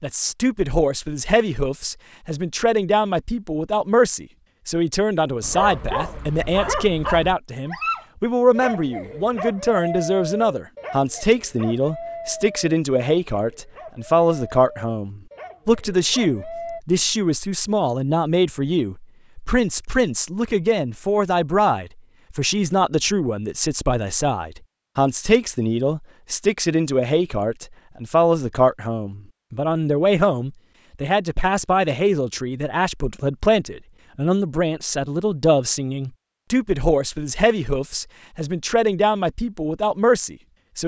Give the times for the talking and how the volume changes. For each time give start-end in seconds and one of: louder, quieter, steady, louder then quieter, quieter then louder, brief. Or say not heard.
0.0-40.8 steady.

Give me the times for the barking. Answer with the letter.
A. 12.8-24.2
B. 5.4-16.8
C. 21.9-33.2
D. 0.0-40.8
B.